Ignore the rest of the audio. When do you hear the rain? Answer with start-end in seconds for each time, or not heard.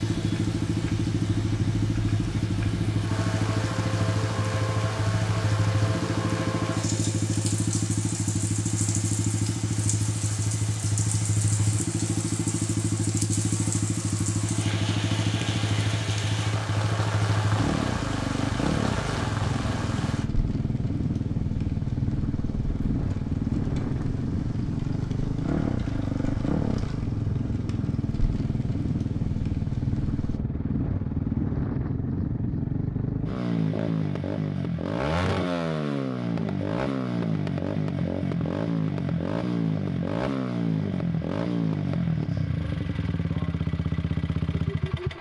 0.0-30.4.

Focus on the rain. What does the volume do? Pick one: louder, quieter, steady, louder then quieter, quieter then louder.
quieter.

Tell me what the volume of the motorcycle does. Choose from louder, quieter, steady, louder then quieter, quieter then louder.
steady.